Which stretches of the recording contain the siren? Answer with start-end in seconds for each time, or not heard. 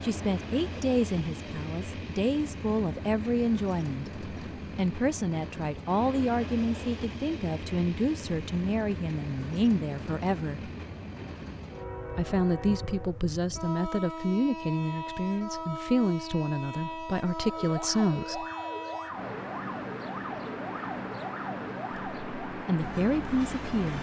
17.4-23.9.